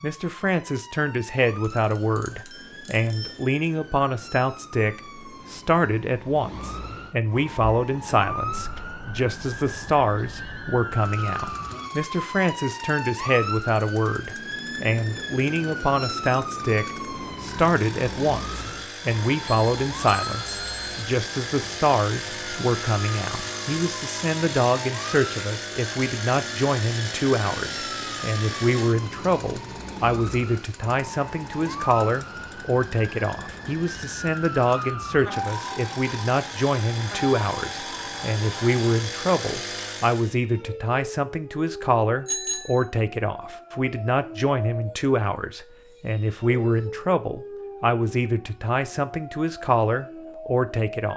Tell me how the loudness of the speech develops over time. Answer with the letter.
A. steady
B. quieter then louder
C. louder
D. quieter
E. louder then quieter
A.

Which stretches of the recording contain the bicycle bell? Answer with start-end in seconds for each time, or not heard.
1.6-3.5, 19.4-21.1, 42.2-42.9.